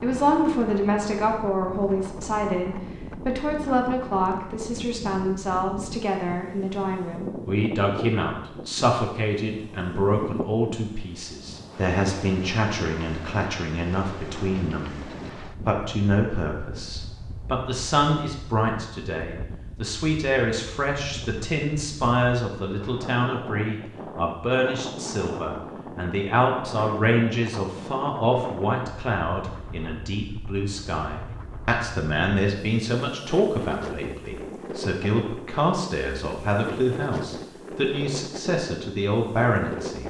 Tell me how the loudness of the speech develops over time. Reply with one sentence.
The volume of the speech stays about the same.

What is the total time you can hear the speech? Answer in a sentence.
The speech can be heard for 39 seconds in total.